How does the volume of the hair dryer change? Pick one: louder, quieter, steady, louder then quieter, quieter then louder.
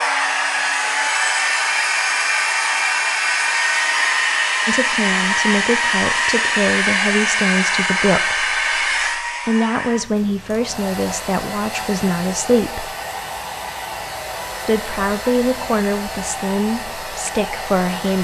quieter.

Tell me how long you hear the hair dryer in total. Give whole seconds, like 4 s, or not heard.
18 s.